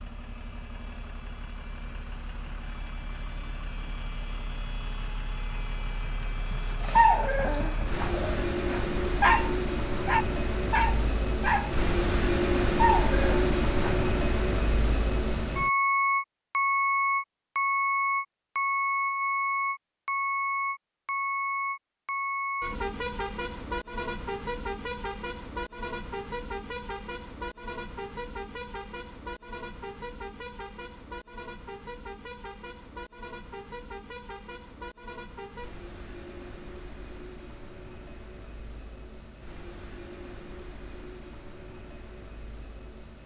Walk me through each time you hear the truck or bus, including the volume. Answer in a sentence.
The truck or bus can be heard from 0.0 to 43.2 s, getting louder then quieter.